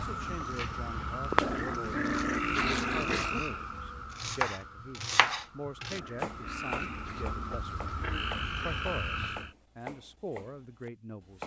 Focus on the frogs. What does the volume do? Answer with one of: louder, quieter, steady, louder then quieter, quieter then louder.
quieter then louder.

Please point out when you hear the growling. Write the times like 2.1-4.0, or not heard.
1.4-3.4, 5.9-7.2.